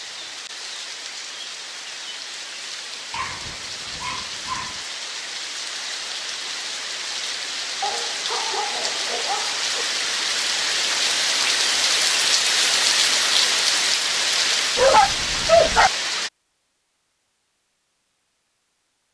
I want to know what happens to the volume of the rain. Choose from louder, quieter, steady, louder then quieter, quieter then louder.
louder.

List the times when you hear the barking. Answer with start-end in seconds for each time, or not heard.
3.1-4.8, 7.8-9.8, 14.8-15.9.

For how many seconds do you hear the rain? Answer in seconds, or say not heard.
16 s.